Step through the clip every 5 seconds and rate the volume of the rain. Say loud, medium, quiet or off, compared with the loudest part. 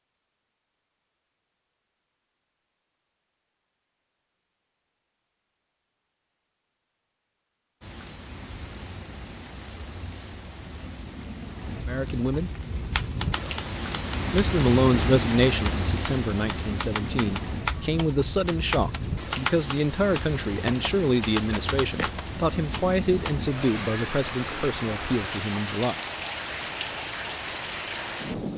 off, medium, loud, loud, loud, loud.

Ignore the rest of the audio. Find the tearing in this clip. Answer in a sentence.
The tearing can be heard from 21.5 to 22.1 s.